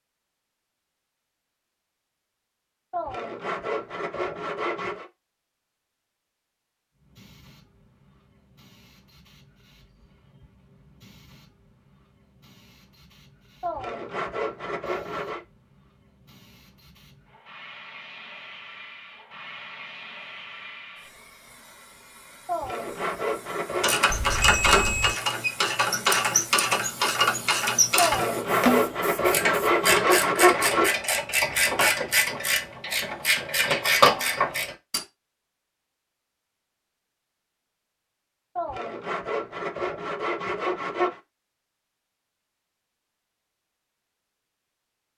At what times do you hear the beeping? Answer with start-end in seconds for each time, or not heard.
24.1-25.1.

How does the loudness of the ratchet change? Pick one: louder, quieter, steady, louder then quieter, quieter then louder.
steady.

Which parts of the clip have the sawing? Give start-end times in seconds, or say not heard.
2.9-5.1, 13.6-15.4, 22.4-24.1, 27.9-30.9, 38.5-41.2.